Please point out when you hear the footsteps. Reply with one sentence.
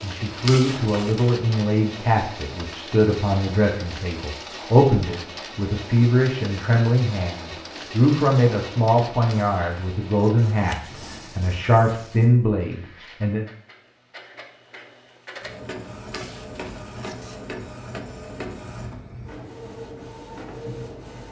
The footsteps can't be heard in this clip.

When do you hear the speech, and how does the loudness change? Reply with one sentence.
The speech can be heard from 0.0 to 13.4 s, at a steady volume.